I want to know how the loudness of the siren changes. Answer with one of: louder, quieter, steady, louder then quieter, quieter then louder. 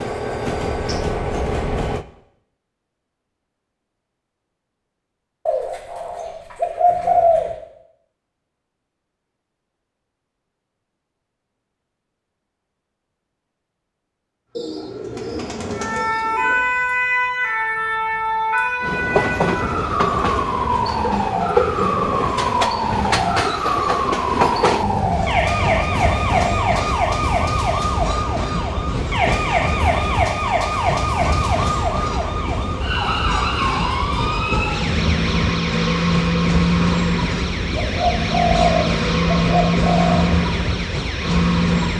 steady.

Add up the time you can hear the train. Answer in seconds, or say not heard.
25 s.